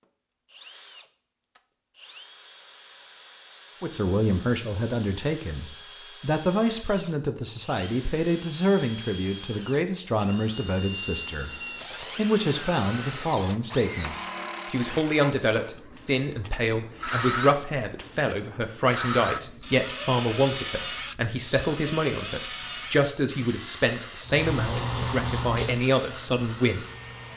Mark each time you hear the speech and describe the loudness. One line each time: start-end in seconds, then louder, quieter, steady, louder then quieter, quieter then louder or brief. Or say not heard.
3.8-26.9 steady.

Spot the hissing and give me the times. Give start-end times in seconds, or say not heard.
24.2-27.3.